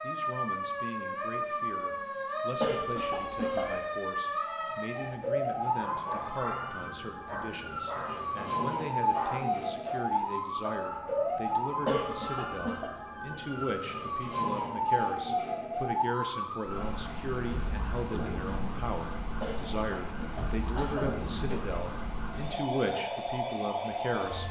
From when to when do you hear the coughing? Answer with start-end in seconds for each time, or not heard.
2.6-3.8, 11.8-12.9, 19.4-21.6.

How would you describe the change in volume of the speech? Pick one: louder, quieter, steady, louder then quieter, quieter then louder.
louder.